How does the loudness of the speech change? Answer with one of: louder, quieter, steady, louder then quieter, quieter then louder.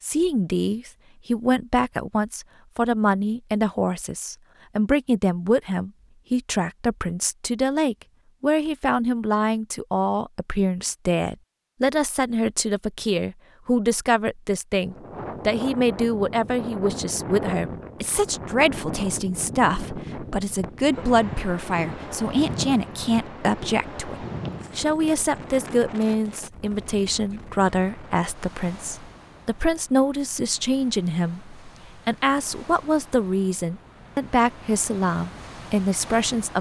steady.